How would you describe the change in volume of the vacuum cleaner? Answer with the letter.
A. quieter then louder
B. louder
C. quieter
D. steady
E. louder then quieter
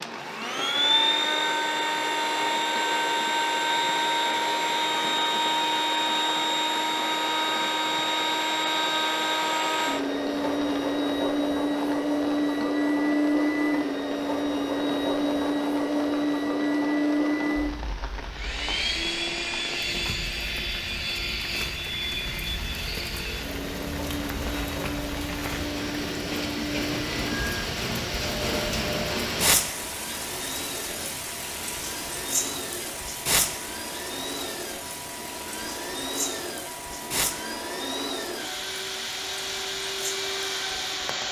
C.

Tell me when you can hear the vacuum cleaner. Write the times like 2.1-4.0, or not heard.
0.0-41.2.